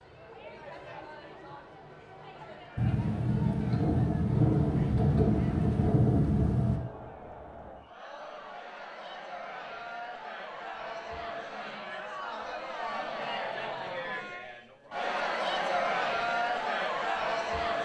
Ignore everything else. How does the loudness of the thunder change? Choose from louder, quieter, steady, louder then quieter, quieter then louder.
steady.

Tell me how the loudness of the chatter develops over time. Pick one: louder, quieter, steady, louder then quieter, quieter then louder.
louder.